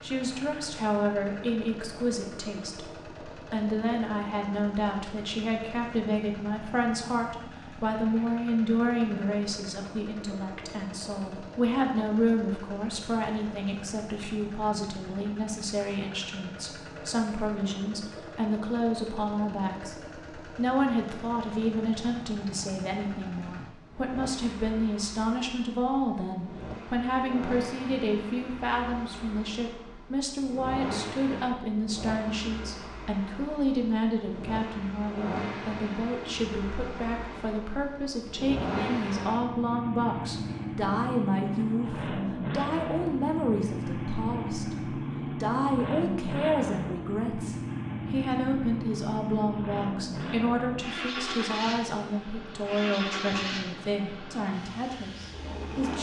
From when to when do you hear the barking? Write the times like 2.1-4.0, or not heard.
not heard.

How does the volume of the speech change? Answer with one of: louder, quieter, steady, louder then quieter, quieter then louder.
steady.